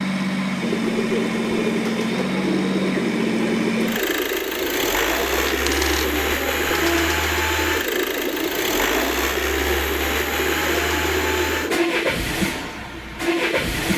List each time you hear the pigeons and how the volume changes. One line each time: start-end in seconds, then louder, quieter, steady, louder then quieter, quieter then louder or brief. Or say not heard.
0.6-11.8 steady.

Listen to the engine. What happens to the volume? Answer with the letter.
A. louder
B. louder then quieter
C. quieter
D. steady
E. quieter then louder
D.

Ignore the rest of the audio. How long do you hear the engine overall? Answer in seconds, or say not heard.
14 s.